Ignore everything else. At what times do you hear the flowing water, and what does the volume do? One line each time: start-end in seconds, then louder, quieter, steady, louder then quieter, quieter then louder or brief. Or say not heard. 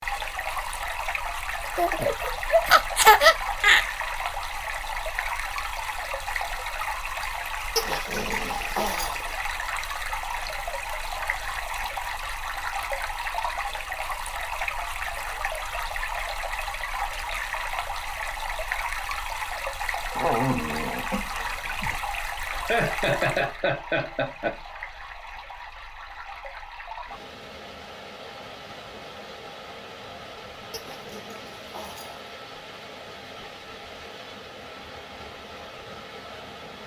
0.0-36.8 quieter.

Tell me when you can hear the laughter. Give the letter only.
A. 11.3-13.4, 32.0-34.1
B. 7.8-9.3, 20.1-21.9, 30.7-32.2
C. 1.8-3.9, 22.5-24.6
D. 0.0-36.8
C.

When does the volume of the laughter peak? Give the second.
3 s.